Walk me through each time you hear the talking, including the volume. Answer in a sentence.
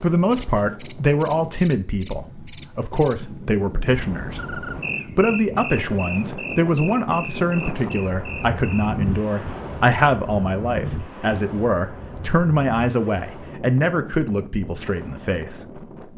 The talking can be heard from 0.0 to 15.8 s, at a steady volume.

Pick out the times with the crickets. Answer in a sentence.
The crickets can be heard from 0.0 to 8.9 s.